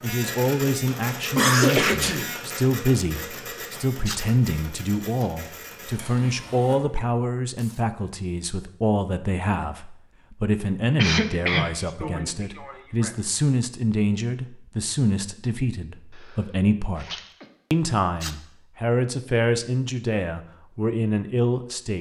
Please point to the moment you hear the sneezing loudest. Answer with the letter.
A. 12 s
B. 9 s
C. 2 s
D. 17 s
C.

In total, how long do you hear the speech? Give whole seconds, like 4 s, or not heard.
21 s.